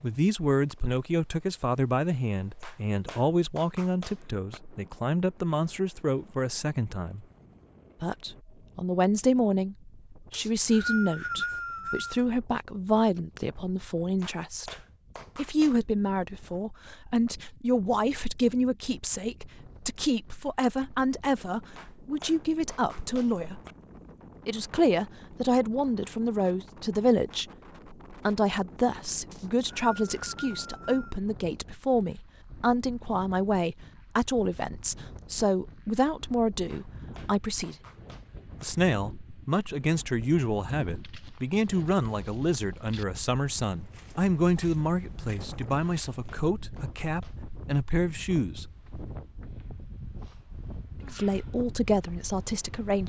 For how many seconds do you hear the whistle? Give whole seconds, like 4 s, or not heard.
4 s.